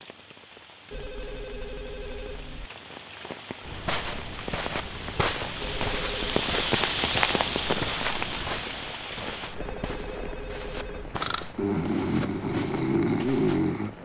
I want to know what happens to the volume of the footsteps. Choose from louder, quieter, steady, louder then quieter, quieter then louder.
quieter.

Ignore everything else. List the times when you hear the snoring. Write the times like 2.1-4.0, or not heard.
11.2-14.0.